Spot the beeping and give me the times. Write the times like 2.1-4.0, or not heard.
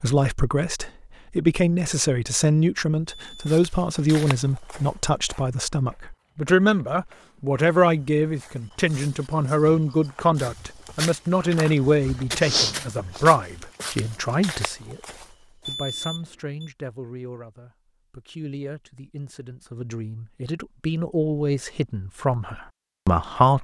3.1-3.6, 15.7-16.7.